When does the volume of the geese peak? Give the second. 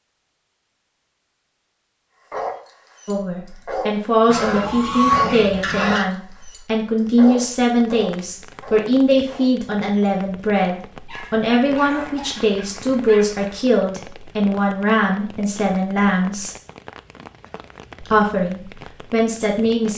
5 s.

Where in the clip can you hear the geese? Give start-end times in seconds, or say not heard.
4.3-6.0, 11.8-13.7.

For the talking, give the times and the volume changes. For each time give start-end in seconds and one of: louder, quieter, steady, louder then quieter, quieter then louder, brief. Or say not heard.
3.0-16.6 steady
18.0-19.9 brief.